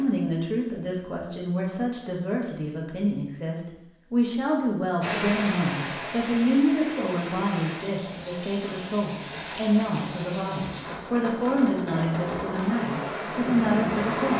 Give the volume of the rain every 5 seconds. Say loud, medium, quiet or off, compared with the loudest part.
off, loud, loud.